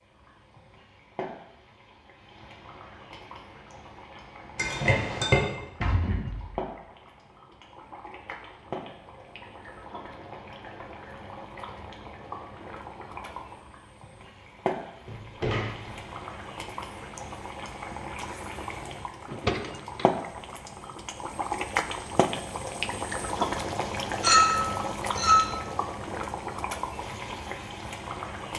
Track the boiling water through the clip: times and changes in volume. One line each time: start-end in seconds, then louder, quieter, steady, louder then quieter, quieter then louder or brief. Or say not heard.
0.0-28.5 louder.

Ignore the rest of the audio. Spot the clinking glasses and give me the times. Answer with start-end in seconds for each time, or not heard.
4.5-5.4, 24.2-25.4.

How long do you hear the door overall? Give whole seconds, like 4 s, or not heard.
3 s.